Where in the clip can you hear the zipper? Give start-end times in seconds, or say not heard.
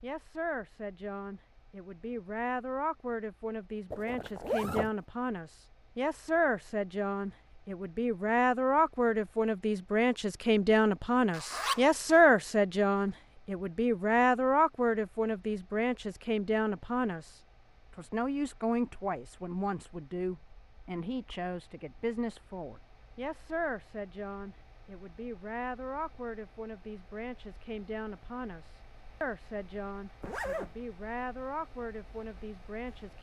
3.9-4.9, 11.3-12.2, 30.2-30.8.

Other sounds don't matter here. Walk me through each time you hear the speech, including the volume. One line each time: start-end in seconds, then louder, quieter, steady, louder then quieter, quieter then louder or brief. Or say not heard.
0.0-33.1 louder then quieter.